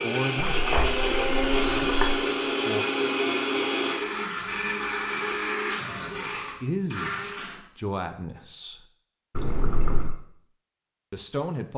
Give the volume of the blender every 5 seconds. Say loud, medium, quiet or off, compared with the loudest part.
loud, loud, off.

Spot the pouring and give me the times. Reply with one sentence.
The pouring can be heard from 0.5 to 2.1 s and from 9.3 to 10.2 s.